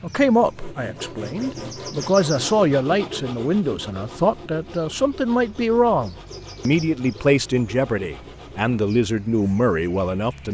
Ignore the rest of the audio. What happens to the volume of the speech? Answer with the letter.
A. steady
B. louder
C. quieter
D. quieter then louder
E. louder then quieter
A.